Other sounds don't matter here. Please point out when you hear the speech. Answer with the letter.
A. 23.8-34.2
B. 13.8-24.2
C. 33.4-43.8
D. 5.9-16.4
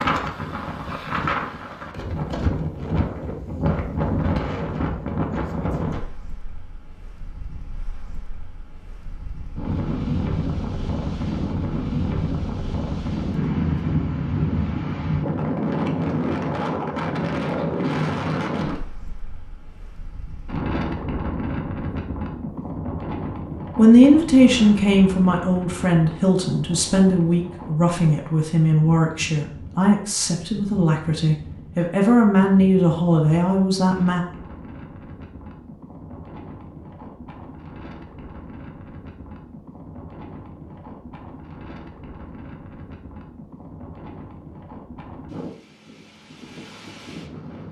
A.